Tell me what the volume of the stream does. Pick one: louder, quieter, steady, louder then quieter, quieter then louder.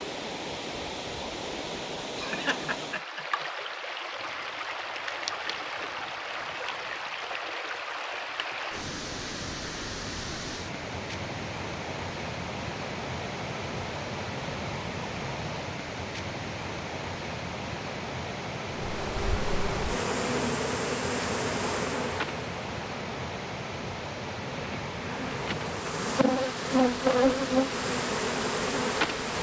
steady.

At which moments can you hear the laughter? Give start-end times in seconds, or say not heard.
2.1-3.6.